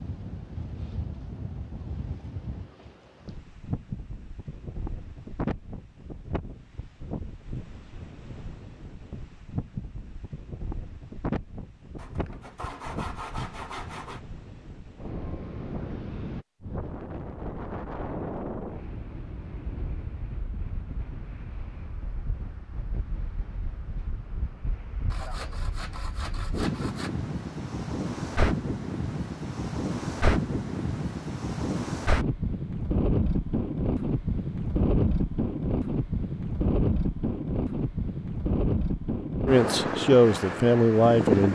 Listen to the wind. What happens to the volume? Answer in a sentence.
The loudness of the wind goes up.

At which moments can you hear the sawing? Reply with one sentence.
The sawing can be heard from 11.9 to 14.2 s and from 25.1 to 27.1 s.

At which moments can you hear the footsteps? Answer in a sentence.
The footsteps can't be heard in this clip.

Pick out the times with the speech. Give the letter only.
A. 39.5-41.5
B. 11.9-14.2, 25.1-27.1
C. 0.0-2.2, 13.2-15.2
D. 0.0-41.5
A.